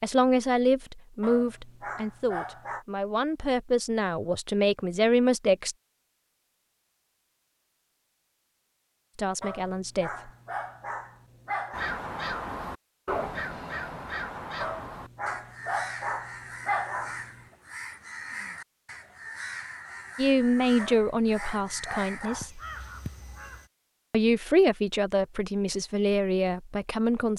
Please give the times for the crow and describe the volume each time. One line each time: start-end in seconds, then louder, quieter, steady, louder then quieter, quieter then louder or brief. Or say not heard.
11.7-23.7 quieter.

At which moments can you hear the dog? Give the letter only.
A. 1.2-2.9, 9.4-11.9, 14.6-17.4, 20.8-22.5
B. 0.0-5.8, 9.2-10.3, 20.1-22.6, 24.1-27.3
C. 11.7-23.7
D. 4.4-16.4
A.